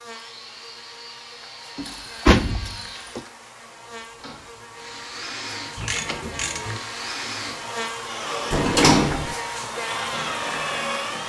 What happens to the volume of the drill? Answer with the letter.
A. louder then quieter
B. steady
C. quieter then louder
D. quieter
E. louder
E.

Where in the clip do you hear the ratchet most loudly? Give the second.
6 s.